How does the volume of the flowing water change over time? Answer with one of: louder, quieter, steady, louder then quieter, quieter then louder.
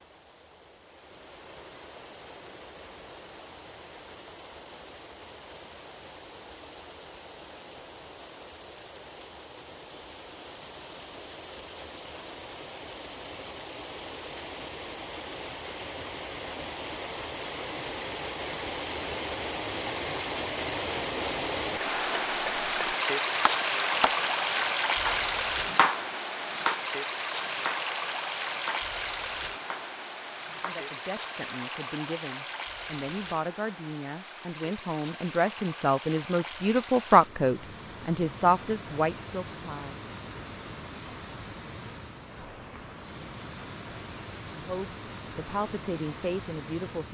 louder then quieter.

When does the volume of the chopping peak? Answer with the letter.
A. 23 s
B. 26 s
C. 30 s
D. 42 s
B.